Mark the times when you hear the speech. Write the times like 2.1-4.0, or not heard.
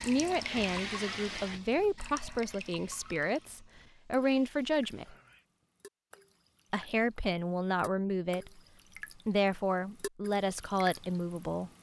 0.0-5.2, 6.7-8.6, 9.2-11.7.